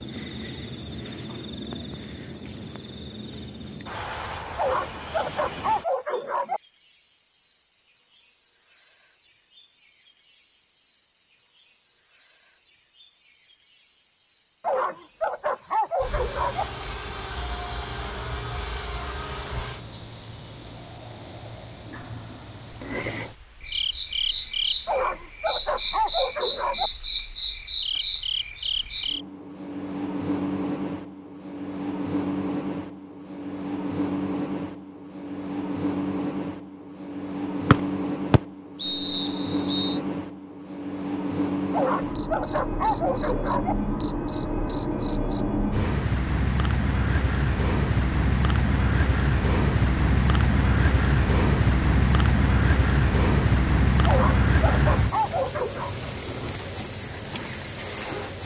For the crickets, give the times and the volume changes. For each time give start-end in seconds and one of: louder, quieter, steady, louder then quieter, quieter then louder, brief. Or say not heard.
0.0-58.4 louder.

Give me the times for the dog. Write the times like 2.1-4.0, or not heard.
4.5-6.6, 14.6-16.6, 24.9-26.9, 41.7-43.8, 54.0-56.0.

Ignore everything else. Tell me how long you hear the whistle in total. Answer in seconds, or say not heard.
2 s.